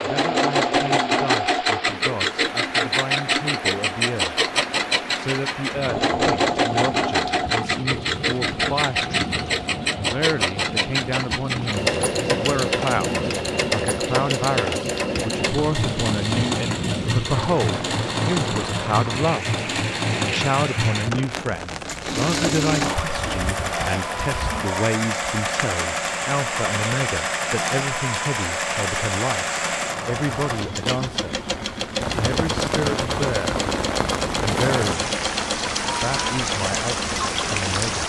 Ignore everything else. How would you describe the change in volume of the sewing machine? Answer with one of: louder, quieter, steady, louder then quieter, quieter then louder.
quieter.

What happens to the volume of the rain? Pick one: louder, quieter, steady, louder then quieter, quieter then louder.
louder.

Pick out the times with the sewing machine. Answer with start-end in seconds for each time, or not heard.
0.0-37.8.